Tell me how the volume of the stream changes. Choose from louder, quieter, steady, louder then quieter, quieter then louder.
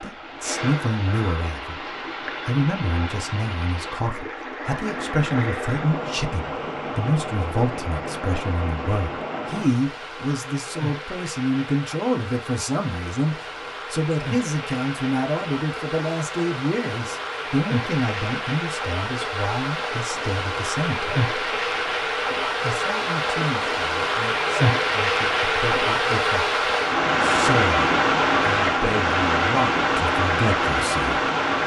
louder.